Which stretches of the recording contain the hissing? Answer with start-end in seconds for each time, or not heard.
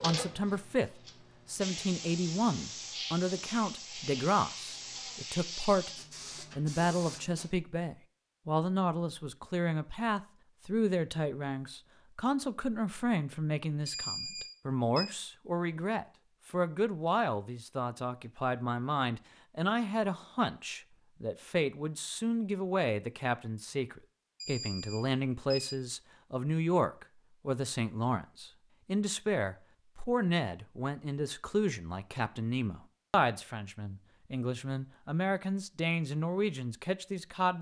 0.0-7.5.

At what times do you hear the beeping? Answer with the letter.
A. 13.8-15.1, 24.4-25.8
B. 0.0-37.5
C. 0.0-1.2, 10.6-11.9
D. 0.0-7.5
A.